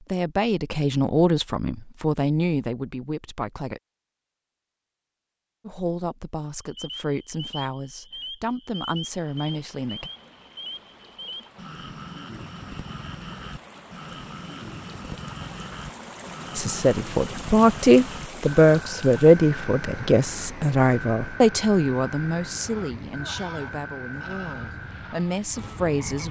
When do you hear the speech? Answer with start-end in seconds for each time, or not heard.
0.0-3.8, 5.7-10.1, 16.6-26.2.